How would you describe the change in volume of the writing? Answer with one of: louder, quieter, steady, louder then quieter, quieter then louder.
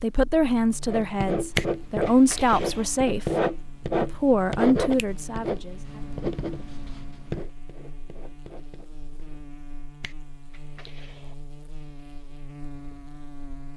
quieter.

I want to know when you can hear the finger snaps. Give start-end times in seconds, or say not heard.
1.6-2.9, 10.0-11.3.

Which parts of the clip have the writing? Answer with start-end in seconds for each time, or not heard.
0.8-9.4.